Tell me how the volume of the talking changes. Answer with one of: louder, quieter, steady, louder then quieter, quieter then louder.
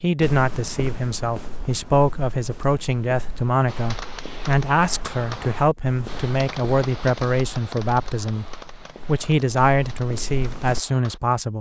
steady.